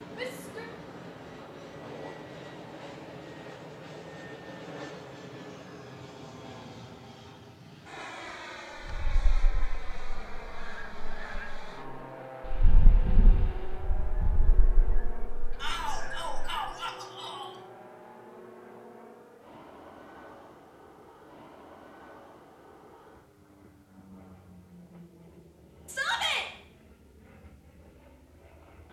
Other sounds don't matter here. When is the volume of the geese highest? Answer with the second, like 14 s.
13 s.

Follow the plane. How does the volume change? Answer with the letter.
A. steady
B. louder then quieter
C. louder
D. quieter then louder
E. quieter
E.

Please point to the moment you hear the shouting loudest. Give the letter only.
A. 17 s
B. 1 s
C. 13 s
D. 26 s
D.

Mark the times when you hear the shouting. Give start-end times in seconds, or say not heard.
0.1-0.7, 15.6-17.6, 25.9-26.4.